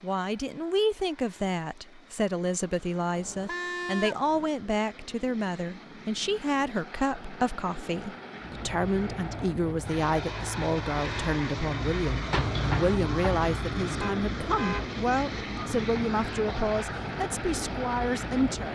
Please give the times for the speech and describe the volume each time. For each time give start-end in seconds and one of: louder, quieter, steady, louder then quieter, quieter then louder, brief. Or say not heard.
0.0-18.7 steady.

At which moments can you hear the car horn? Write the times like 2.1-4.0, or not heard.
3.1-4.5, 14.0-14.9.